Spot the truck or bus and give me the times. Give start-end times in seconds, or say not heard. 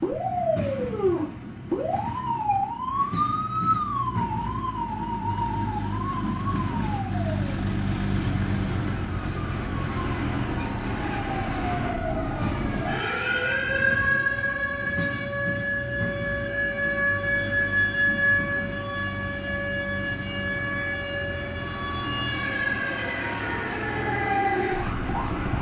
0.0-25.5.